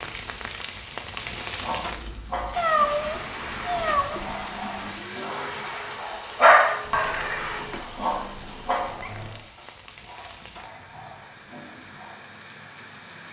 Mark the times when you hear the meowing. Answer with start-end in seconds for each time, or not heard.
2.5-4.2, 6.8-9.4.